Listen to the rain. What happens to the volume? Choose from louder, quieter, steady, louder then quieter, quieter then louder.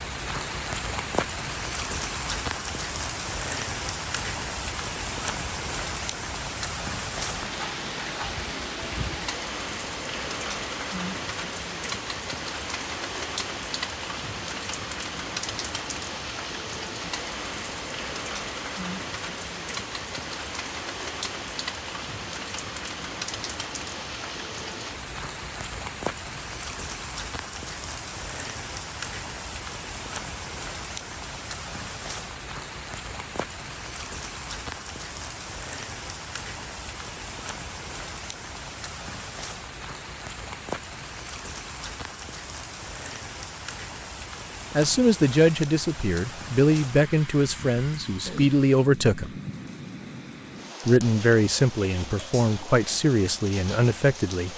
quieter.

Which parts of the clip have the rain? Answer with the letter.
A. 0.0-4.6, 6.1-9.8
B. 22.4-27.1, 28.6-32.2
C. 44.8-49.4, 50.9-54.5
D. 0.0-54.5
D.